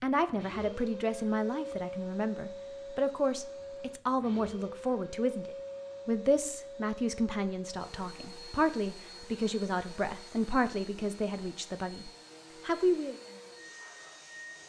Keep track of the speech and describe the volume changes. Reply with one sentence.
The volume of the speech stays about the same.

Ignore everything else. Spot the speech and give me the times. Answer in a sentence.
You can hear the speech from 0.0 to 13.2 s.